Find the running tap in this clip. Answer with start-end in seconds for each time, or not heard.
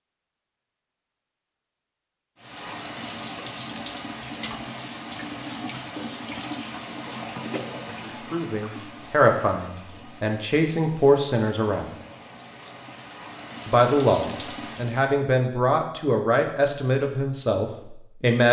2.4-15.0.